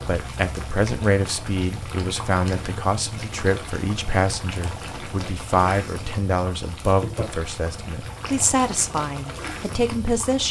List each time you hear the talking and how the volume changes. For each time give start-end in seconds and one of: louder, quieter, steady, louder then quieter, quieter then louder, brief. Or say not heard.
0.1-10.4 steady.